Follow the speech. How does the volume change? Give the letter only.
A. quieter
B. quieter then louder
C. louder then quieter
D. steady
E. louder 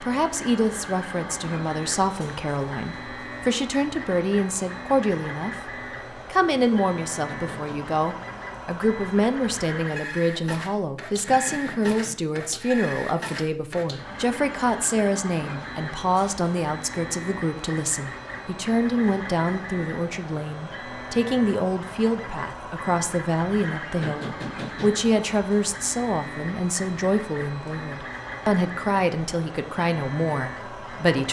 D.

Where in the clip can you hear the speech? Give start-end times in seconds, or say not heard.
0.0-31.2.